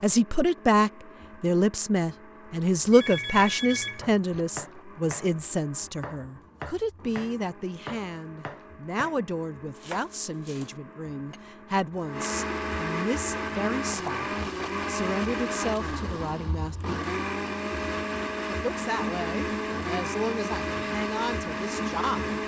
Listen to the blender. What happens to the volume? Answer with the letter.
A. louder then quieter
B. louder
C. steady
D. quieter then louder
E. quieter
B.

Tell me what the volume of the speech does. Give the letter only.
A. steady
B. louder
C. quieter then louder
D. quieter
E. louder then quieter
D.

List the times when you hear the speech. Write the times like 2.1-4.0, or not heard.
0.0-16.8, 18.4-22.4.